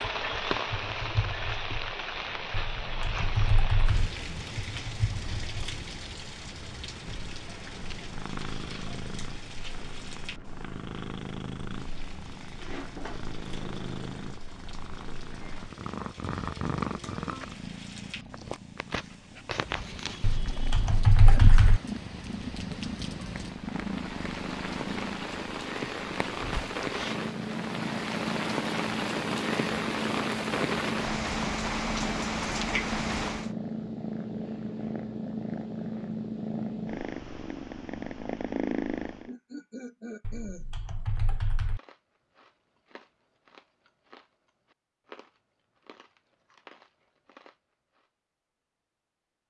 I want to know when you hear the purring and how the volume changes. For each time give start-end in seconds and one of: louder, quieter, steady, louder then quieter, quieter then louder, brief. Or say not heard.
0.0-39.3 louder.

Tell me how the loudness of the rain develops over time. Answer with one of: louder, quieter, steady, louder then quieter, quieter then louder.
quieter then louder.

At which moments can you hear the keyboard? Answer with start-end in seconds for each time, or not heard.
2.5-4.1, 20.2-21.8, 40.2-41.8.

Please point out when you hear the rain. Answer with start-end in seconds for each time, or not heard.
0.0-33.5.